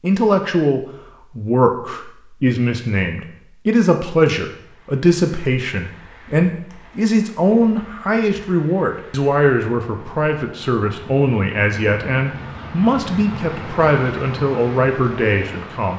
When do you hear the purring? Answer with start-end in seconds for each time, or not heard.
not heard.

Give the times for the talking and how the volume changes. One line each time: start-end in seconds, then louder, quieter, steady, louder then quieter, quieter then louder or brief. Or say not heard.
0.0-15.9 steady.